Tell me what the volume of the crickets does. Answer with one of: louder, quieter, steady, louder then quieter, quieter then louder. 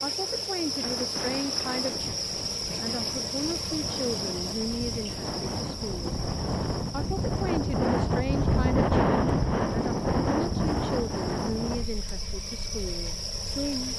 quieter then louder.